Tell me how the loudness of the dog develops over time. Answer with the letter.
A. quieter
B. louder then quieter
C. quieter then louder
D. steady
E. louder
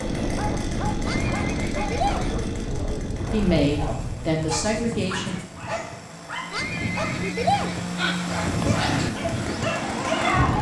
E.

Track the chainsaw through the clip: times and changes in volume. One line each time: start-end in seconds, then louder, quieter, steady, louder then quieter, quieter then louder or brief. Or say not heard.
0.0-10.5 quieter then louder.